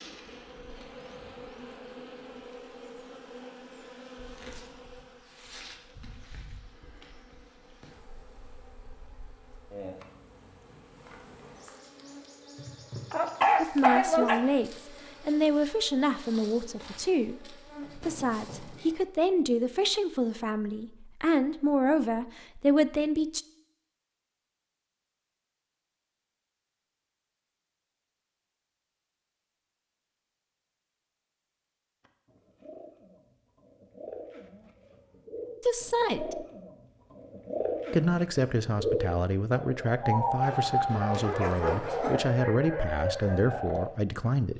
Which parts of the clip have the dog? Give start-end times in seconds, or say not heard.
13.1-14.6, 40.4-42.2.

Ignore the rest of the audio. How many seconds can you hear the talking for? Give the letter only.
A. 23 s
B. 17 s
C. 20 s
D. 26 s
B.